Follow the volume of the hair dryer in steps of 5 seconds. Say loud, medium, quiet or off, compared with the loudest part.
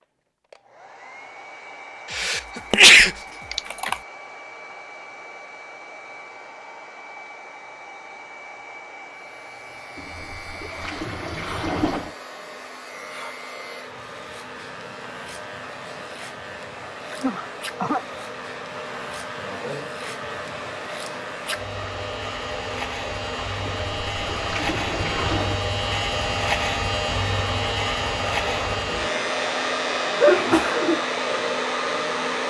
quiet, quiet, quiet, medium, medium, loud, loud.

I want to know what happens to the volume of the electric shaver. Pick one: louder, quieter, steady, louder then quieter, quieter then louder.
louder.